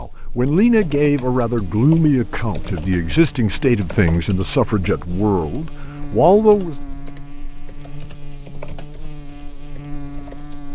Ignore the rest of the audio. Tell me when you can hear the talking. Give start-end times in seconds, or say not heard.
0.0-6.8.